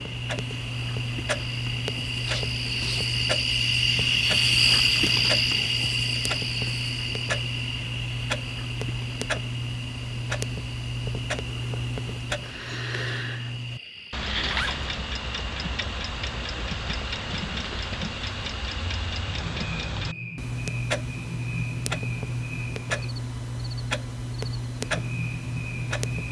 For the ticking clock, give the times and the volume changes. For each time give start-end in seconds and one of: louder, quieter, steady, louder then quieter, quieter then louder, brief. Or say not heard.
0.0-26.2 steady.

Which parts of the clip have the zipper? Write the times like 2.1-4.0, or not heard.
2.1-3.1, 14.4-15.1.